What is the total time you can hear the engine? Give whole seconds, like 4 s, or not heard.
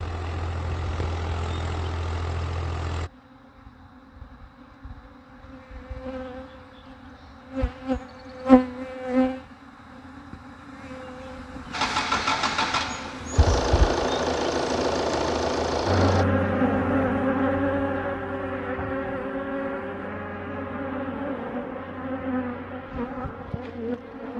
8 s.